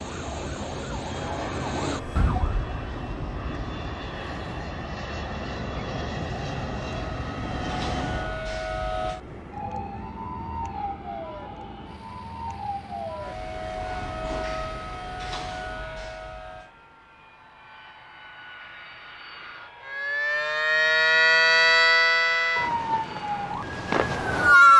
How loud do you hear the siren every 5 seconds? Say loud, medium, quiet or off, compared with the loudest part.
quiet, quiet, quiet, quiet, loud.